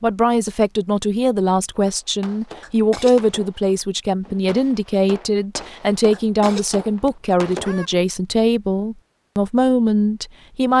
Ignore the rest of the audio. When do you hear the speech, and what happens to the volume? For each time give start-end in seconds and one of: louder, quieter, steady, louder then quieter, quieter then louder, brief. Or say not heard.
0.0-10.7 steady.